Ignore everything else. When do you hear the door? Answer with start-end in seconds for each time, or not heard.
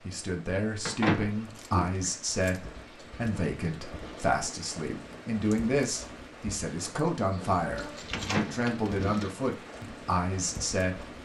0.8-1.9, 8.1-9.2.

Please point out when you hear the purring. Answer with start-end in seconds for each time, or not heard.
not heard.